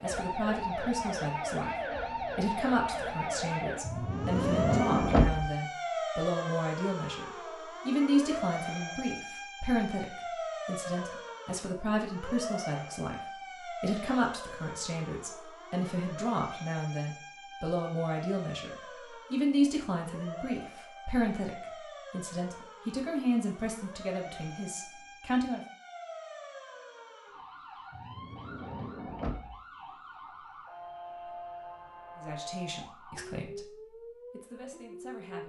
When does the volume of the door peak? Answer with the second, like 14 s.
5 s.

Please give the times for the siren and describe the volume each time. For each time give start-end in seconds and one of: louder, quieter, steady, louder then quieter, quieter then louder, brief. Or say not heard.
0.0-35.4 quieter.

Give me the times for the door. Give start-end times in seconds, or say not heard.
3.9-5.5, 27.9-29.6.